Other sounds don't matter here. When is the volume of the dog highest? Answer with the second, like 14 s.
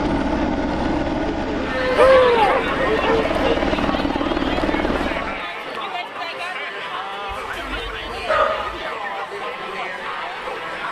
2 s.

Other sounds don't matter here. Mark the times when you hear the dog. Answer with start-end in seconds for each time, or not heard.
1.9-3.5, 7.3-8.9.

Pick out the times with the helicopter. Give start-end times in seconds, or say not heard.
0.0-5.5.